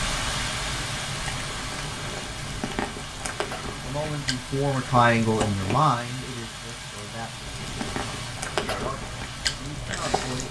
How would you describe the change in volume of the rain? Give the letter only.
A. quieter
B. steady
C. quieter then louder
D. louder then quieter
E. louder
A.